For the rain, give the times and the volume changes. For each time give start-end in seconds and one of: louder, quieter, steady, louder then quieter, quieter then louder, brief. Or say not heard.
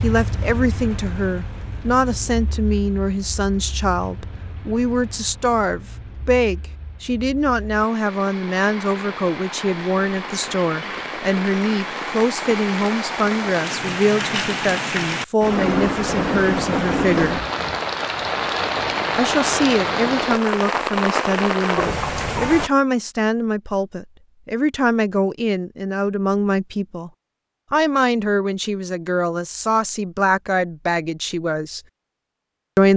0.0-22.7 louder.